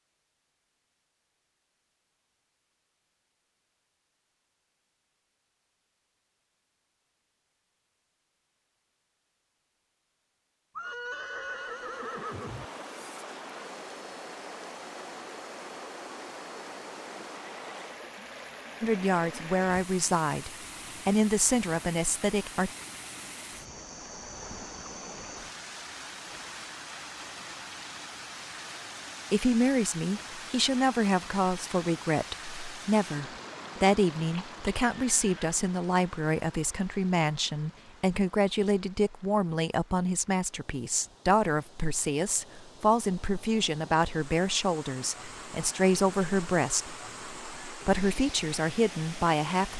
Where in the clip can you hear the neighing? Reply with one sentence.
The neighing can be heard from 10.8 to 12.7 s and from 34.1 to 35.6 s.